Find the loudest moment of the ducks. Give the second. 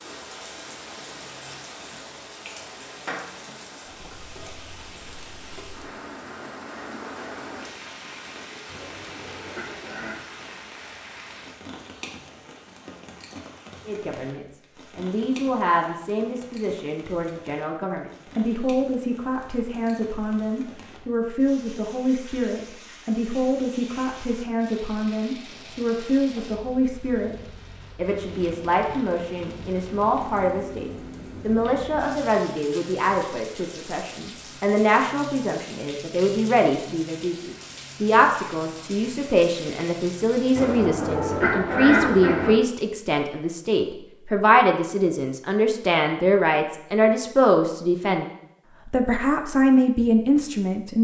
42 s.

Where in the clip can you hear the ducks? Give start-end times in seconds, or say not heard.
8.7-10.2, 40.5-42.5.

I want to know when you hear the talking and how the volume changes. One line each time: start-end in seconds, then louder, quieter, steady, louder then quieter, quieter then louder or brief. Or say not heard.
13.8-48.2 louder
48.9-50.9 brief.